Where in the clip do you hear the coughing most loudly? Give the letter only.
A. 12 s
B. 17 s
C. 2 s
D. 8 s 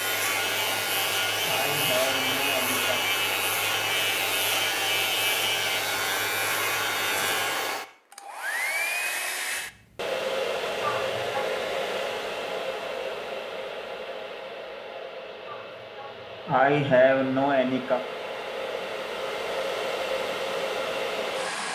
B.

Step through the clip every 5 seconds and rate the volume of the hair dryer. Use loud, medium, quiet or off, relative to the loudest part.
loud, loud, loud, medium, loud.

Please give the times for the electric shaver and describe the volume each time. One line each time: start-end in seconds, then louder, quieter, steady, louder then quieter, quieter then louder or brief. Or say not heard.
0.0-7.8 steady.